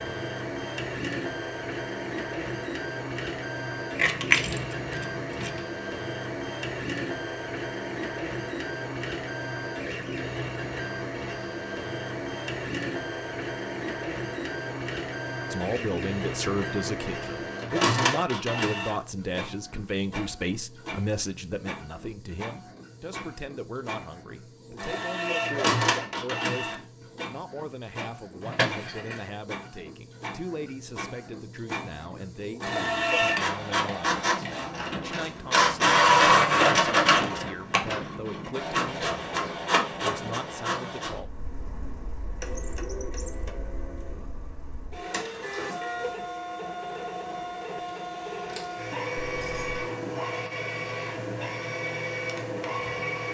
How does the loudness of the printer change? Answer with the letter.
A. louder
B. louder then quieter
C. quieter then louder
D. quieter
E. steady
B.